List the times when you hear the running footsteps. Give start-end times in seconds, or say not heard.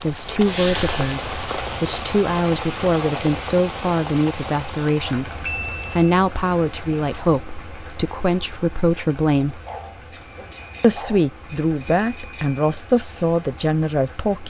not heard.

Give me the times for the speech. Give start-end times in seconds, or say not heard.
0.0-9.6, 10.8-14.4.